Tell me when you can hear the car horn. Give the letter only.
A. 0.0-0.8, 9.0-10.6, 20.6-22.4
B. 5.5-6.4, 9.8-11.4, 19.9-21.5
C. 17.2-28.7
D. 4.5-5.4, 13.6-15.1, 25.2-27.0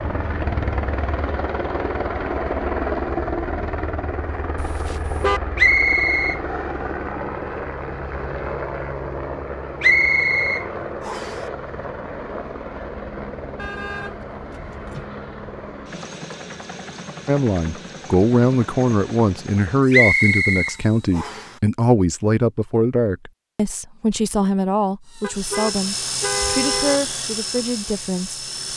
D.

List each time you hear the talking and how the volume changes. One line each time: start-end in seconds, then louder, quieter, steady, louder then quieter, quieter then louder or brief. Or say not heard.
17.2-28.7 quieter.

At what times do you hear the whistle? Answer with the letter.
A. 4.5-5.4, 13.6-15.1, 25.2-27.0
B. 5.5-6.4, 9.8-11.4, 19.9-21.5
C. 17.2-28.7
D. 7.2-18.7
B.